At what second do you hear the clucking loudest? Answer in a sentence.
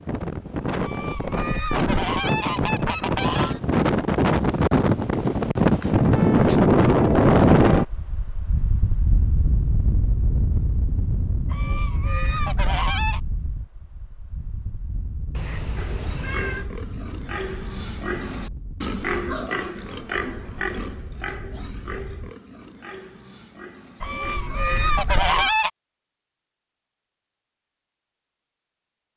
The volume of the clucking peaks at 25 seconds.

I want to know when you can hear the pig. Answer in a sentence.
You can hear the pig from 15.8 to 25.5 s.